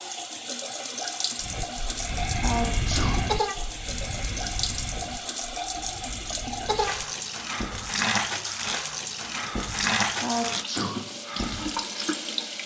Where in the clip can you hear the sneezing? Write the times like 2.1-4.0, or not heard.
2.4-3.2, 10.2-11.0.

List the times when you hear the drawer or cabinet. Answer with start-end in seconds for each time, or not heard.
not heard.